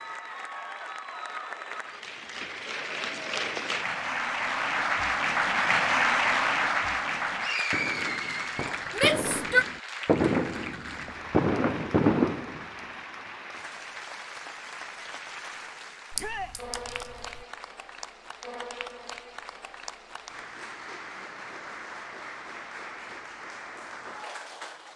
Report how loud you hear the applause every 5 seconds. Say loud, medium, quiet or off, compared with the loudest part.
medium, loud, quiet, quiet, quiet.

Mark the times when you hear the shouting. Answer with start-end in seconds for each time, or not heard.
8.9-9.7, 16.1-16.6.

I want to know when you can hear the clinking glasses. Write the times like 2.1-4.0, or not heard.
16.1-17.4.